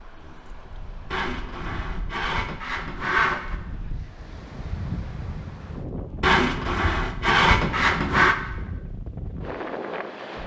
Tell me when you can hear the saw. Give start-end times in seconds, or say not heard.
1.1-3.5, 6.2-8.3.